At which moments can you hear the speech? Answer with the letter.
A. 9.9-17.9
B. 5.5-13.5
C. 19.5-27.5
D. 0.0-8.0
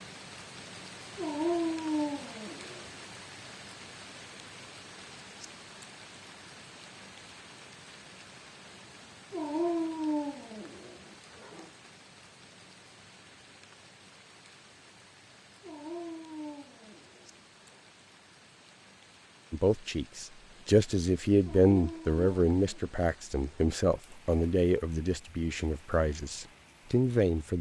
C.